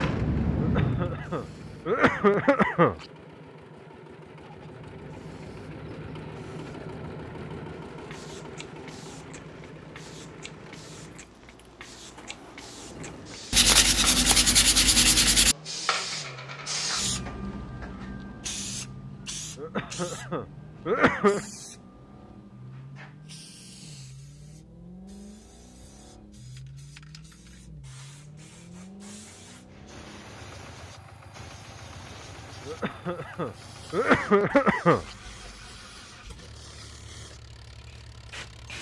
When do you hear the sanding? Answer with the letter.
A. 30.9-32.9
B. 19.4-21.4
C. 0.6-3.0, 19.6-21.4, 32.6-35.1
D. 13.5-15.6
D.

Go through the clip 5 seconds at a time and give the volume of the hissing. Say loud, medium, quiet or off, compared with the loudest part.
loud, quiet, quiet, medium, quiet, quiet, quiet, quiet.